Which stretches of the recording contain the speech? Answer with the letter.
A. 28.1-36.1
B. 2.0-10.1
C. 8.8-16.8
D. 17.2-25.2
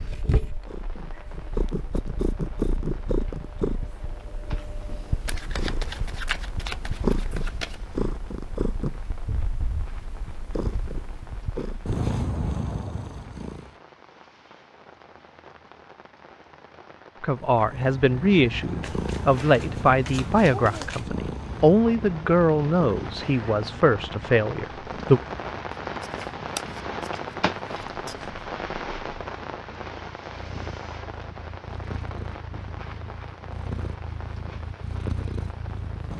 D.